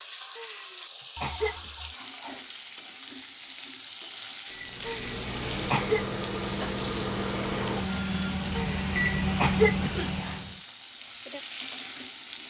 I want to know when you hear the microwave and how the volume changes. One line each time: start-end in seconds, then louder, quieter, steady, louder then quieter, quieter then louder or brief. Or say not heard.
4.5-10.6 louder.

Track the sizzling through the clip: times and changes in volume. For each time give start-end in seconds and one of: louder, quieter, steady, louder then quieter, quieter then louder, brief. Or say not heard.
0.0-12.4 steady.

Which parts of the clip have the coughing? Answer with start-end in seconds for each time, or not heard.
0.3-1.7, 4.8-6.0, 8.6-10.4.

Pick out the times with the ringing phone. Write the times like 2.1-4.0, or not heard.
1.1-1.9, 7.9-8.4.